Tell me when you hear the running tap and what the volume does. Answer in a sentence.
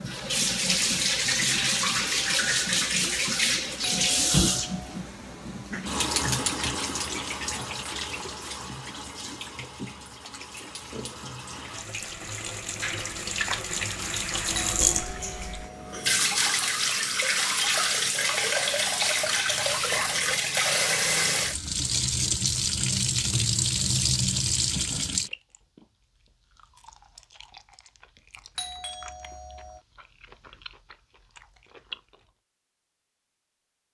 The running tap can be heard from 0.0 to 25.3 s, getting quieter then louder.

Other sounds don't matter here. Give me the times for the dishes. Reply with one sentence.
The dishes can't be heard in this clip.